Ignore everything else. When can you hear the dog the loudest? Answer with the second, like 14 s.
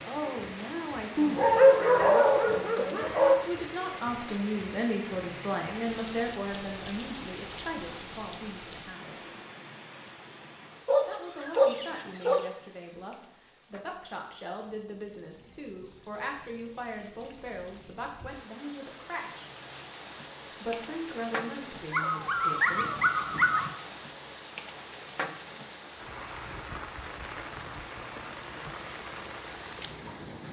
2 s.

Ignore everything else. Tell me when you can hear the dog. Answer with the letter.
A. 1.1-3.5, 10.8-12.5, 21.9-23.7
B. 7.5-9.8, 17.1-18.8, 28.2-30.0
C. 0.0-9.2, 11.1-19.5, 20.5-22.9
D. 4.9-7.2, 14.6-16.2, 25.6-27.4
A.